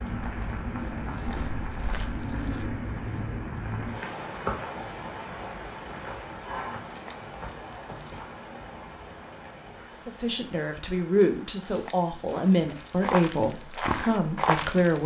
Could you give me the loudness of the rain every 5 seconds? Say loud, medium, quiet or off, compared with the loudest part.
loud, medium, quiet.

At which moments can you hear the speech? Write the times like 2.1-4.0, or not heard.
10.1-15.0.